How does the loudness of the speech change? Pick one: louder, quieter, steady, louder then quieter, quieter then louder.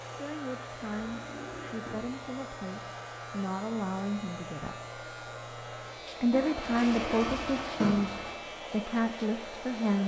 louder.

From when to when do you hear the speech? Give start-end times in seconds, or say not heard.
0.1-4.8, 6.2-10.0.